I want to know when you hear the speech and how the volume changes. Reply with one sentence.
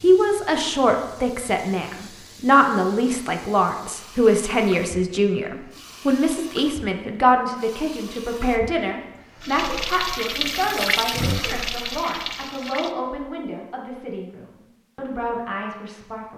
You can hear the speech from 0.0 to 16.3 s, getting quieter.